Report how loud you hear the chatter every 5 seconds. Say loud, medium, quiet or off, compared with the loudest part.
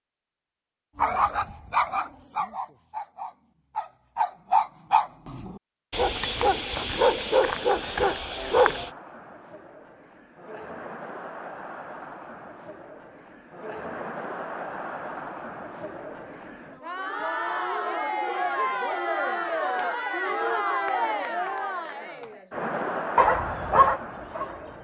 off, quiet, medium, loud, loud.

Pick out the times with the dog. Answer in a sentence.
You can hear the dog from 0.9 to 8.9 s and from 23.1 to 24.7 s.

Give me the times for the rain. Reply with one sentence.
You can't hear the rain here.